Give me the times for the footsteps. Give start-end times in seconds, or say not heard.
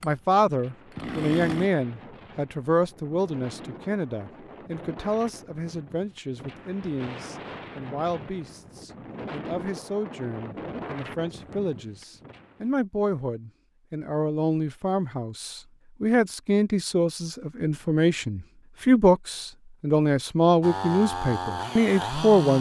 not heard.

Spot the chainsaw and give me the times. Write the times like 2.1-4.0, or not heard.
0.0-1.7, 20.6-22.5.